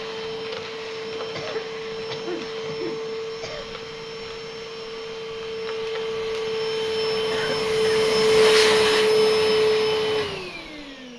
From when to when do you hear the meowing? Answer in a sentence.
The meowing can't be heard in this clip.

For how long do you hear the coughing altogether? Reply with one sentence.
The coughing can be heard for 3 seconds in total.